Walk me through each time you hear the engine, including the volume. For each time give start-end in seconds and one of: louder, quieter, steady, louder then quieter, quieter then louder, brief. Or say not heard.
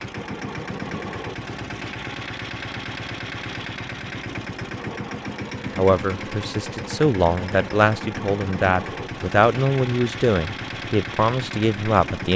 0.0-12.3 steady.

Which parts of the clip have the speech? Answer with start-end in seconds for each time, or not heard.
5.7-12.3.